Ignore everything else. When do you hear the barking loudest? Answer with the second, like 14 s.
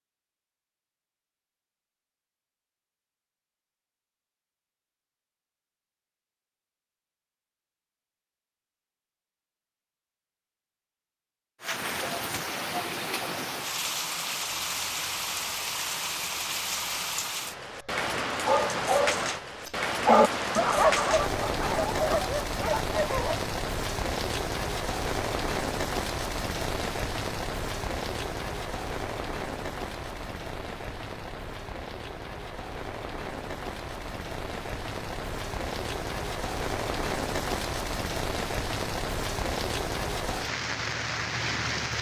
20 s.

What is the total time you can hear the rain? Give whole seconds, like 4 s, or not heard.
30 s.